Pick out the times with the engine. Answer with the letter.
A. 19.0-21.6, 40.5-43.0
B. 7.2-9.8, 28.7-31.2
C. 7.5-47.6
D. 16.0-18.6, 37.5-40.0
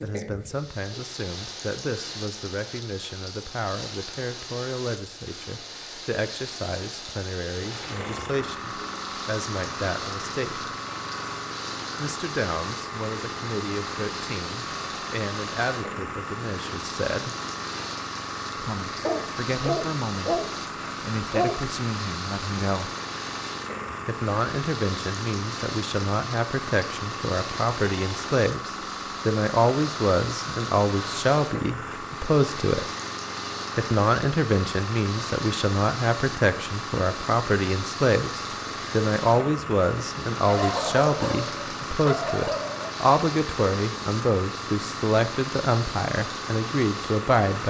C.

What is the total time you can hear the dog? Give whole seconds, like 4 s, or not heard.
5 s.